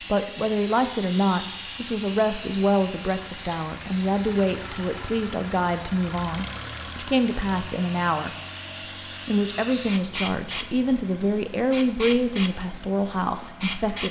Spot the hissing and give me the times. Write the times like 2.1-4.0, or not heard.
0.0-14.0.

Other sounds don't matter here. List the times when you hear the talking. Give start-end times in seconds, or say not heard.
0.1-8.3, 9.2-14.0.